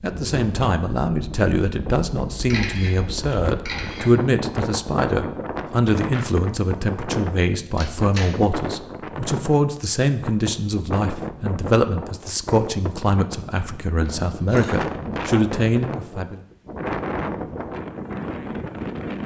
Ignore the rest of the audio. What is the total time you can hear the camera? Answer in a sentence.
The camera can be heard for 3 seconds in total.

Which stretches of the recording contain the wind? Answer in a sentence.
You can hear the wind from 0.0 to 19.2 s.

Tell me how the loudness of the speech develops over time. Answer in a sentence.
The volume of the speech stays about the same.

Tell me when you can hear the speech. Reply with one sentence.
The speech can be heard from 0.0 to 16.4 s.